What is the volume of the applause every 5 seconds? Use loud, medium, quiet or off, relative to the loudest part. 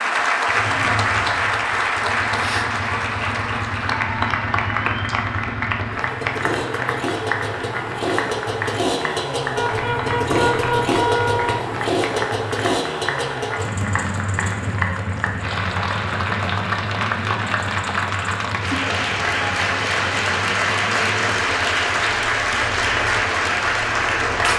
loud, medium, medium, loud, loud.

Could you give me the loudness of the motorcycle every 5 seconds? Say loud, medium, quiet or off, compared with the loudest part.
medium, loud, loud, medium, quiet.